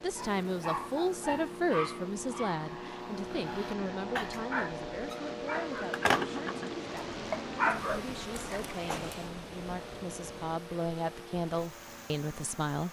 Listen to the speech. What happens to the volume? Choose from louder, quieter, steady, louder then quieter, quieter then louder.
quieter then louder.